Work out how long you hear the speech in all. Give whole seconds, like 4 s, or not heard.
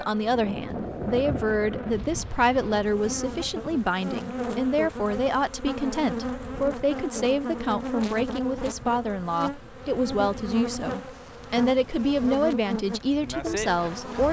14 s.